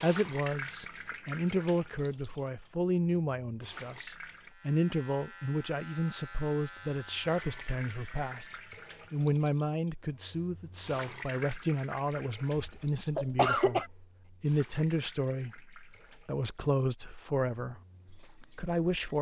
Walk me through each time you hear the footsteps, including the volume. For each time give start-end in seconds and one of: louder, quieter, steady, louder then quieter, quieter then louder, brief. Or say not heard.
not heard.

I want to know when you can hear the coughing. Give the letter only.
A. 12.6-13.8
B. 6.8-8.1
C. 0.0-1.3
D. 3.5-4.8
A.